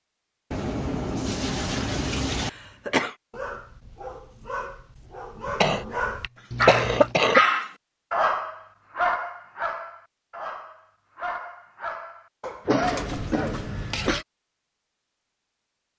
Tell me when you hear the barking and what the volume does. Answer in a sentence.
You can hear the barking from 3.3 to 12.8 s, getting louder then quieter.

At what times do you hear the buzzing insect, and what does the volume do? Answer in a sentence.
You can't hear the buzzing insect here.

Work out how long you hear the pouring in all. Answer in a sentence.
You can hear the pouring for 4 seconds altogether.